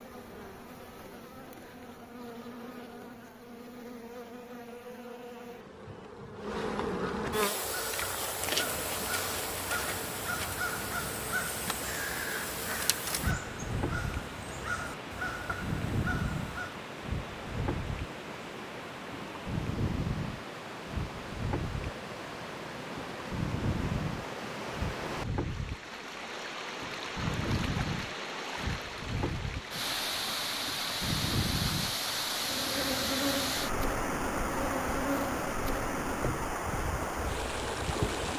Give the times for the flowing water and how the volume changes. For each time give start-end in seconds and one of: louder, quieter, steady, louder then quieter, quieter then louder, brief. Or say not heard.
8.4-38.3 louder.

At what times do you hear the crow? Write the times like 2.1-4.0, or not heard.
7.6-16.8.